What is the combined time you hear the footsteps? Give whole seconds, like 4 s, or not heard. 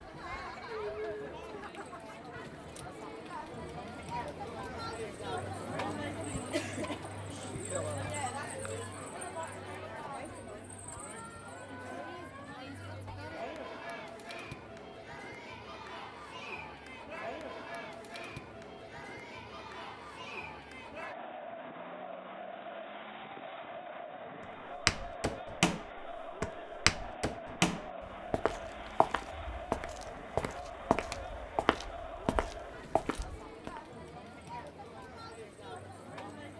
9 s.